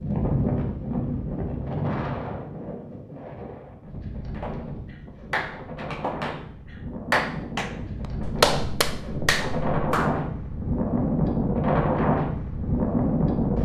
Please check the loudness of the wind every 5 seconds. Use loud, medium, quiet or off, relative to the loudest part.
medium, medium, loud.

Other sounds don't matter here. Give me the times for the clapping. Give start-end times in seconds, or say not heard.
4.3-10.2.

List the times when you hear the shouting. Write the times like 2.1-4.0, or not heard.
not heard.